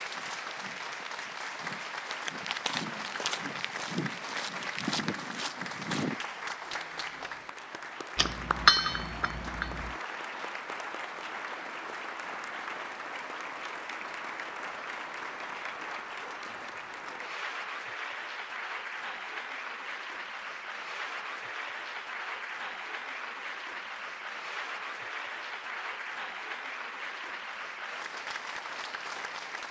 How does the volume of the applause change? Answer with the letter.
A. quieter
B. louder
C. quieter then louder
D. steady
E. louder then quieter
D.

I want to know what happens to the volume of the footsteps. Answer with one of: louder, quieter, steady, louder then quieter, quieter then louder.
louder.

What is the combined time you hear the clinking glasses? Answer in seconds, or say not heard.
2 s.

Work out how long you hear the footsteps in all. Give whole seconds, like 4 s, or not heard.
6 s.